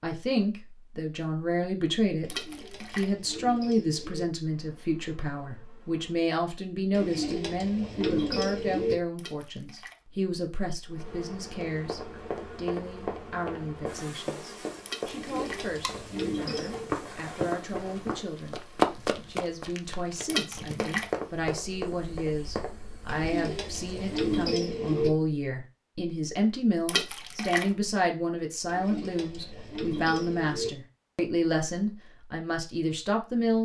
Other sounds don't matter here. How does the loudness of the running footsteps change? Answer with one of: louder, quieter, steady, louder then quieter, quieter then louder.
louder then quieter.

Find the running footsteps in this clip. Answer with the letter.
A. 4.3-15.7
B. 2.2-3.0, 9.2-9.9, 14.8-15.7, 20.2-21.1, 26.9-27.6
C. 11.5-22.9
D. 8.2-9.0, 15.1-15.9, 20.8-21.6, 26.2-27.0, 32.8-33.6
C.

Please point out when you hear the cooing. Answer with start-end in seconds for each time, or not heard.
2.2-4.2, 6.9-8.9, 15.1-16.9, 23.1-25.1, 28.6-30.7.